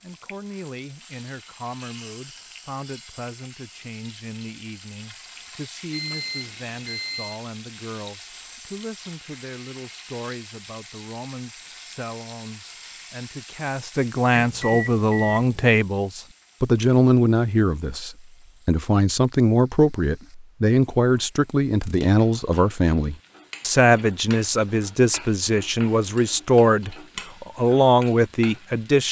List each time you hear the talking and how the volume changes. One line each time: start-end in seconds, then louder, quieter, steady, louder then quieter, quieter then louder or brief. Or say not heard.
0.0-29.0 louder.